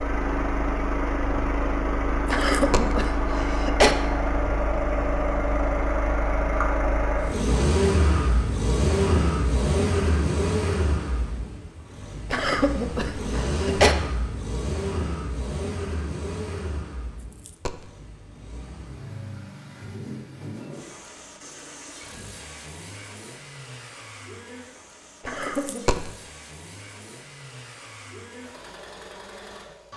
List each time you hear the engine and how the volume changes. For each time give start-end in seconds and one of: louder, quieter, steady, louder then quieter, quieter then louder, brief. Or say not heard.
0.0-29.9 quieter.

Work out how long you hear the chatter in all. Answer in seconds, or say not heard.
not heard.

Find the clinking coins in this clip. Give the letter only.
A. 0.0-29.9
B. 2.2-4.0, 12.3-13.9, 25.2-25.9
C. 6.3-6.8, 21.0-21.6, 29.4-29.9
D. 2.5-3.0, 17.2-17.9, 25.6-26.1
D.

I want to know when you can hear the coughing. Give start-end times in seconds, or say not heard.
2.2-4.0, 12.3-13.9, 25.2-25.9.